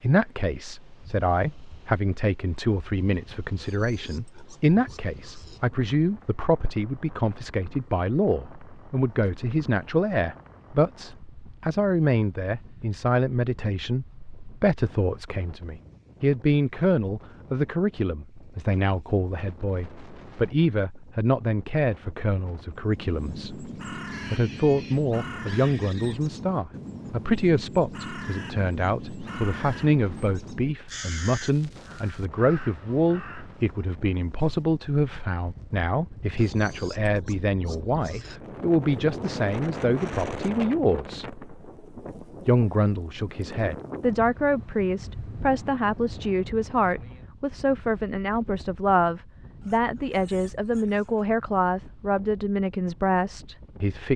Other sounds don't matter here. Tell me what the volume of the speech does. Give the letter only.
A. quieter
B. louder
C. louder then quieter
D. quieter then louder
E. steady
E.